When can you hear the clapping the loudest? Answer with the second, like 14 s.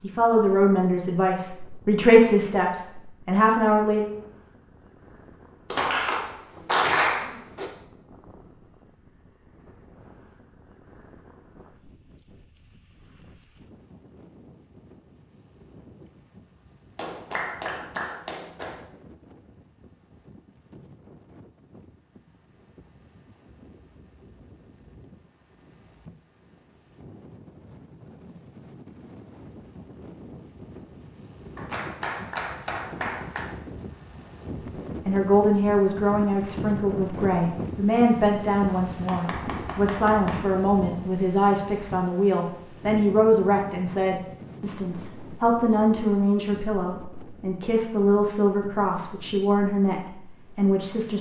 7 s.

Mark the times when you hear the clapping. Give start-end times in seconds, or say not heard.
5.7-7.7, 16.9-18.9, 31.6-33.5, 39.0-41.0.